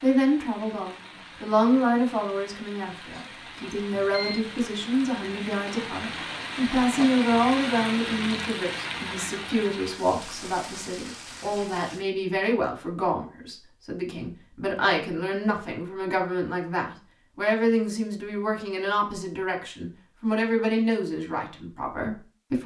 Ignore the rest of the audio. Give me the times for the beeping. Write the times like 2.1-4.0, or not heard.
3.7-4.5.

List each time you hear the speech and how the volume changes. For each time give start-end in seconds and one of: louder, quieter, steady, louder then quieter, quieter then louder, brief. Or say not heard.
0.0-22.6 steady.